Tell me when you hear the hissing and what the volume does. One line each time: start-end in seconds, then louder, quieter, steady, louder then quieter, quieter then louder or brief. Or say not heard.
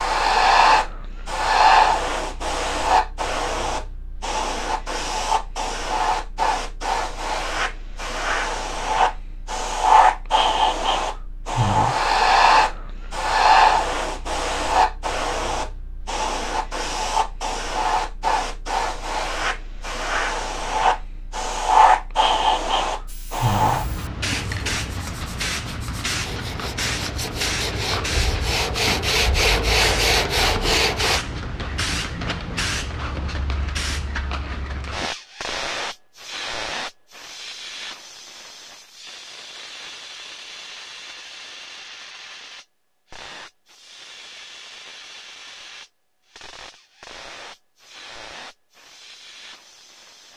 0.0-50.3 quieter.